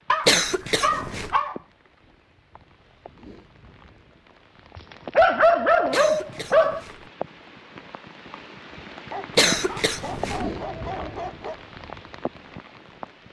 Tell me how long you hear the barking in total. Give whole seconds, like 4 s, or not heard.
6 s.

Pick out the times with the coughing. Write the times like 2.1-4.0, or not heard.
0.2-1.4, 5.9-7.1, 9.3-10.4.